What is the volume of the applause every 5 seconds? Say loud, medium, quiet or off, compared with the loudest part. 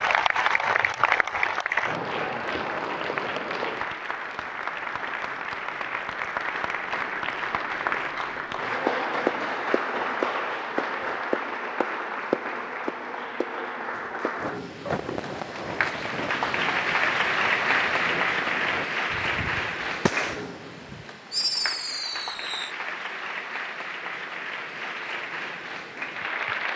loud, loud, loud, loud, medium, medium.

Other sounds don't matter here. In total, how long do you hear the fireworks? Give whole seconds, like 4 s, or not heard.
8 s.